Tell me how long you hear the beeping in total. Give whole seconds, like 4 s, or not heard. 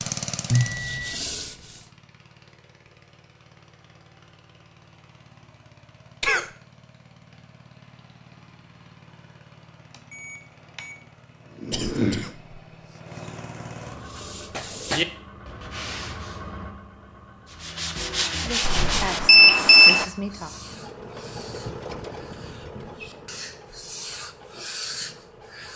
4 s.